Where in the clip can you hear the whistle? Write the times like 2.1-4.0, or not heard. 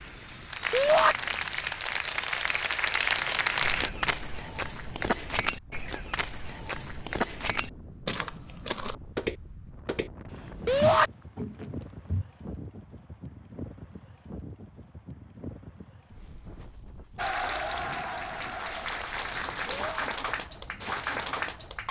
not heard.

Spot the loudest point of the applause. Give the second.
3 s.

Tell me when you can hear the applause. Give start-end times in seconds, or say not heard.
0.0-3.9, 17.1-21.8.